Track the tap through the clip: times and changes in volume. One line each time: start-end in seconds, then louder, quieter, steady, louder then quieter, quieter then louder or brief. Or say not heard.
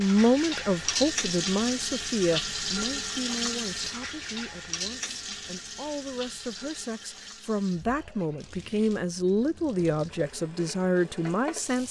0.0-11.8 quieter.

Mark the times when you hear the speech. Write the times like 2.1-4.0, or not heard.
0.0-11.8.